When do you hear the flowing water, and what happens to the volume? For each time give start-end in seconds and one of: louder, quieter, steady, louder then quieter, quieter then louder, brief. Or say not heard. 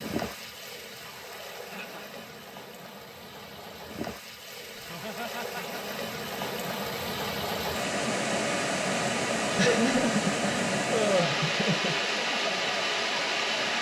0.0-13.7 louder.